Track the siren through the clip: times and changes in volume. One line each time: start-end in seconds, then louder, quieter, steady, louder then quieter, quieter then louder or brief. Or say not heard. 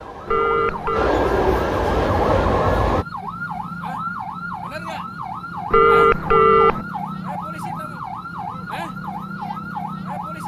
0.0-10.4 steady.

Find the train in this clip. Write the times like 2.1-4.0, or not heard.
0.0-3.0.